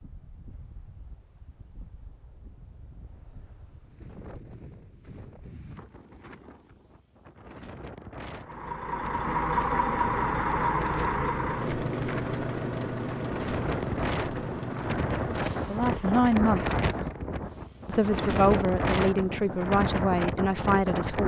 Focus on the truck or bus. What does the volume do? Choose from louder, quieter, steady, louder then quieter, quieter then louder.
quieter.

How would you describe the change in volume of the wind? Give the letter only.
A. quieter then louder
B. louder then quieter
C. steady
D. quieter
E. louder
E.